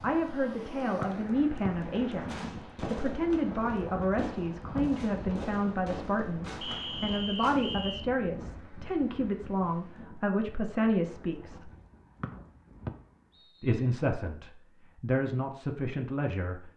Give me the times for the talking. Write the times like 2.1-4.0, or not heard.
0.0-11.7, 13.6-16.7.